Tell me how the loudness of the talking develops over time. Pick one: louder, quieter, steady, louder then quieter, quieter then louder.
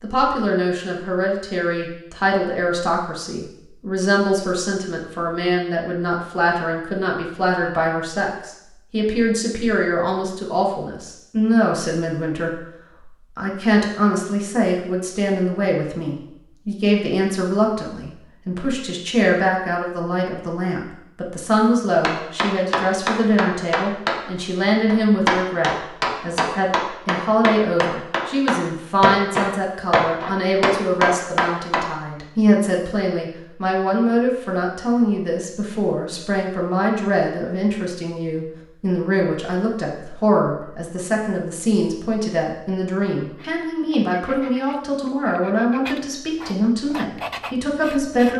steady.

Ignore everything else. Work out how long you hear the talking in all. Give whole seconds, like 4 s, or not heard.
48 s.